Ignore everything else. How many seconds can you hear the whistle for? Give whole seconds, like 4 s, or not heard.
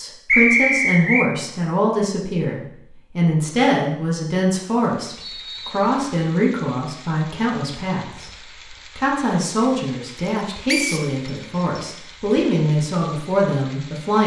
3 s.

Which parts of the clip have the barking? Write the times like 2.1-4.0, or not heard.
not heard.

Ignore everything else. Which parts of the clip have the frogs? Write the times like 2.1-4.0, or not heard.
not heard.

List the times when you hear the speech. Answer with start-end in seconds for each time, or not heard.
0.0-8.3, 8.9-14.2.